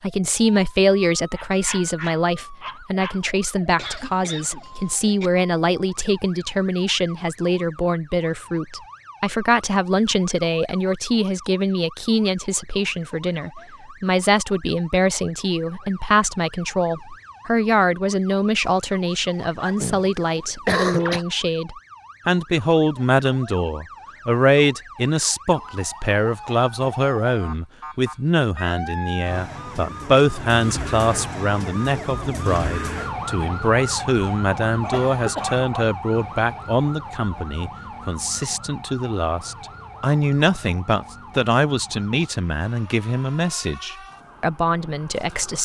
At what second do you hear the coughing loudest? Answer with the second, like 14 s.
21 s.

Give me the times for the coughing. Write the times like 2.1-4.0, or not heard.
3.8-5.3, 19.8-21.2, 34.8-35.6.